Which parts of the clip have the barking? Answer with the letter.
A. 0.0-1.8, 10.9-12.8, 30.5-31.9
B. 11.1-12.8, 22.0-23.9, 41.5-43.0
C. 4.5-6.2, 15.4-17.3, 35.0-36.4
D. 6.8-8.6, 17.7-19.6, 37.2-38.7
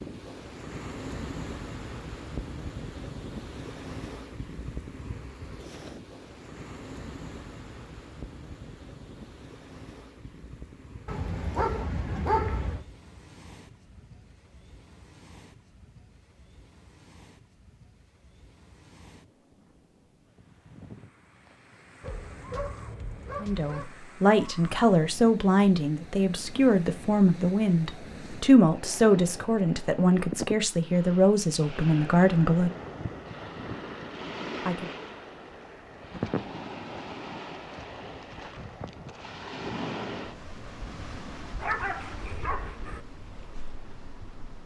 B.